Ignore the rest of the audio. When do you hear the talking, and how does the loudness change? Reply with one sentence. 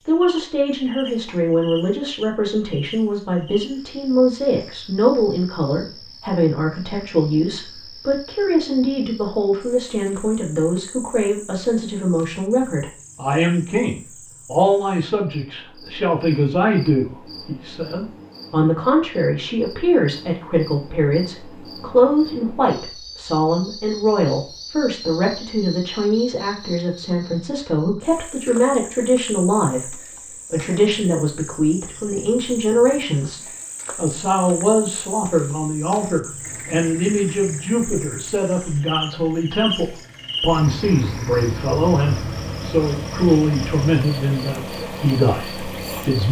You can hear the talking from 0.1 to 46.2 s, at a steady volume.